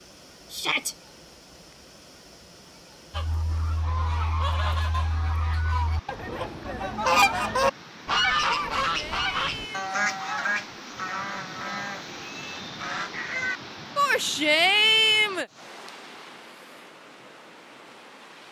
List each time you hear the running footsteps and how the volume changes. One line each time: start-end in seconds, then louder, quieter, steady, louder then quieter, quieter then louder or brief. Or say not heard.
not heard.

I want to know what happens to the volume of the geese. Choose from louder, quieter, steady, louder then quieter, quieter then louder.
louder then quieter.